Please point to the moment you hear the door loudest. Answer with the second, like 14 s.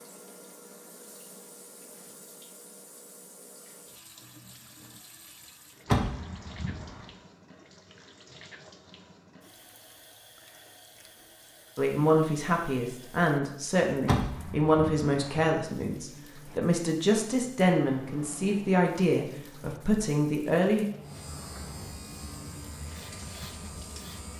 6 s.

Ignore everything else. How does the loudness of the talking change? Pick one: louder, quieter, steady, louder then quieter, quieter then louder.
steady.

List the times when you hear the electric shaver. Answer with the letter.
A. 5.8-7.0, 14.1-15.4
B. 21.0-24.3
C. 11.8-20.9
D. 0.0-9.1
B.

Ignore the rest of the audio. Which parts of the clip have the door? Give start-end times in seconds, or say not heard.
5.8-7.0, 14.1-15.4.